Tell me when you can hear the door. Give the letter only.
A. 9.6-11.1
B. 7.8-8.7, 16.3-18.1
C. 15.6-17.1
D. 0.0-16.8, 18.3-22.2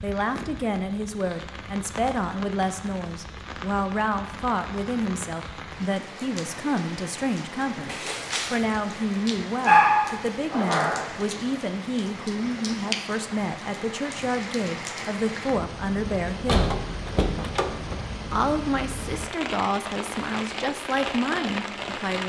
B.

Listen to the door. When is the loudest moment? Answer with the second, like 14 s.
17 s.